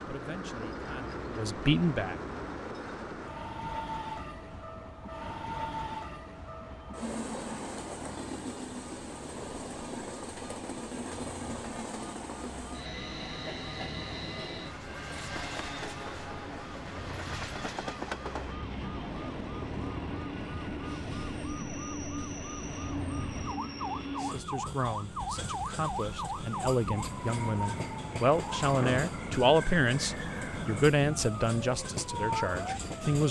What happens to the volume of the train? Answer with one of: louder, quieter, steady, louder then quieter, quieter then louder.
steady.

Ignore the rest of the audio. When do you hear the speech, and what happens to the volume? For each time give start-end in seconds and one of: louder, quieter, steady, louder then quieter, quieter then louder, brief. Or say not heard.
0.1-2.2 brief
24.1-33.2 louder then quieter.